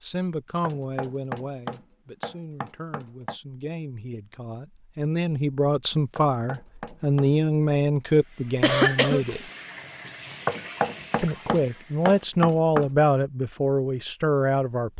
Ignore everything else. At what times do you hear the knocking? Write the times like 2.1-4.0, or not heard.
0.6-3.4, 6.2-7.3, 10.4-12.9.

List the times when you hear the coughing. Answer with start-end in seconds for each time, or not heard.
8.6-9.2.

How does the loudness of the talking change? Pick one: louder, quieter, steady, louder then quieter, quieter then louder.
louder.